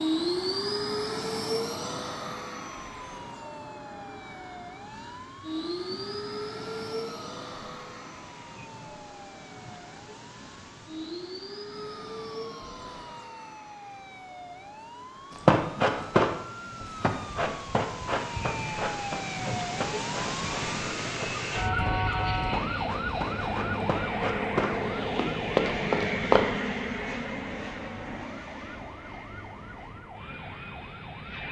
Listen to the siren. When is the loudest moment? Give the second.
22 s.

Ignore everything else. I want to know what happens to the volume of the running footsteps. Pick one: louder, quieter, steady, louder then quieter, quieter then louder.
quieter then louder.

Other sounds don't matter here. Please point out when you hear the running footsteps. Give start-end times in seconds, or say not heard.
15.3-26.4.